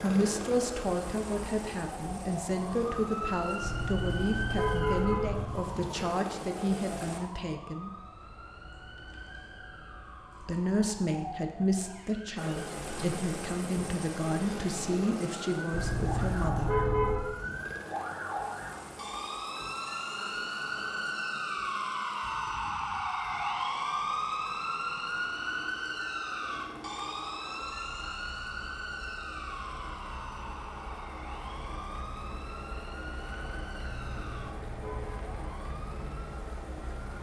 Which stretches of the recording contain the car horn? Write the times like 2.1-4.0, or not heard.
3.6-5.7, 15.7-17.2, 34.0-35.2.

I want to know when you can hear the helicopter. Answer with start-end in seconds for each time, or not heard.
0.0-7.2, 12.3-37.1.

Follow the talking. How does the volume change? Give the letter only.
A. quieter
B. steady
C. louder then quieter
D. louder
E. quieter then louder
B.